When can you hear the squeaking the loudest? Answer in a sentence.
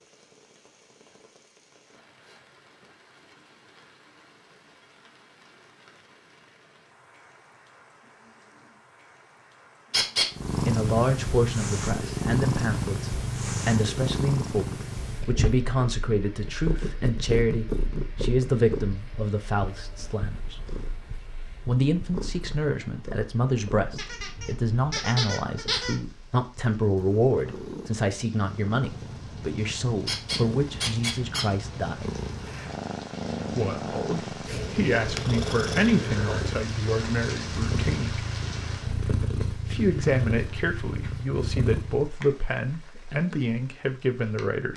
The loudest moment of the squeaking is at 10 seconds.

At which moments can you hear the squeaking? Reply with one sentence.
The squeaking can be heard from 9.9 to 10.3 s, from 23.9 to 26.0 s and from 30.1 to 31.4 s.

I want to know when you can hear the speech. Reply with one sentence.
You can hear the speech from 10.7 to 20.6 s, from 21.6 to 32.1 s, from 33.5 to 38.2 s and from 39.7 to 44.7 s.